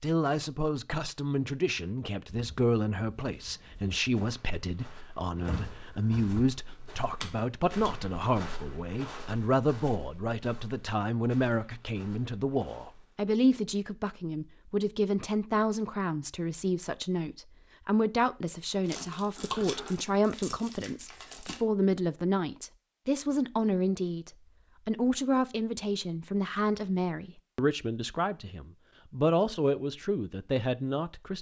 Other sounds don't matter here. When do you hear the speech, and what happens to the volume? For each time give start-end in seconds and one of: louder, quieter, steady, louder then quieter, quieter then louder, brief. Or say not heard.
0.0-31.3 steady.